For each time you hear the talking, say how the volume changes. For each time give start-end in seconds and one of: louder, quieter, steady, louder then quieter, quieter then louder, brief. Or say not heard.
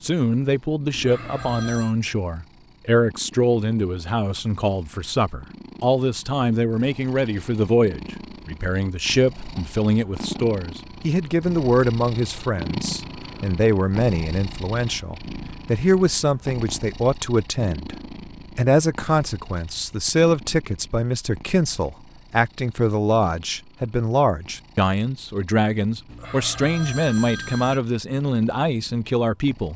0.0-29.7 steady.